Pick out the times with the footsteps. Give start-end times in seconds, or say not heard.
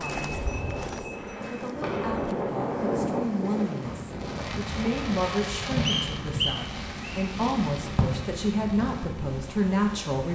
0.0-2.4.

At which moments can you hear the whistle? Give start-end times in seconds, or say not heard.
5.8-7.2.